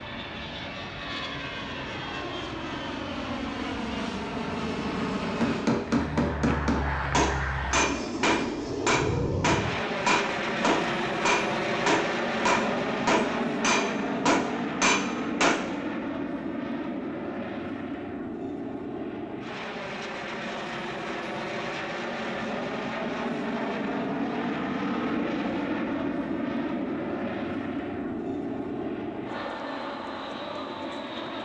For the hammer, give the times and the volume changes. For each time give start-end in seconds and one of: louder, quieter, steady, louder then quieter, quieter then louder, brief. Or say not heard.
5.4-15.6 steady.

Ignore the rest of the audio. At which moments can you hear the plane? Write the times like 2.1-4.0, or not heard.
0.0-31.4.